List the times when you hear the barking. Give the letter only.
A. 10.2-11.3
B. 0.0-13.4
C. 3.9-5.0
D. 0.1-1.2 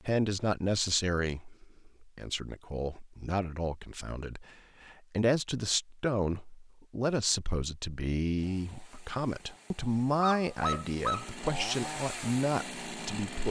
A.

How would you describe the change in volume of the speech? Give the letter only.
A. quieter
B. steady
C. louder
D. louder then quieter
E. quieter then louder
B.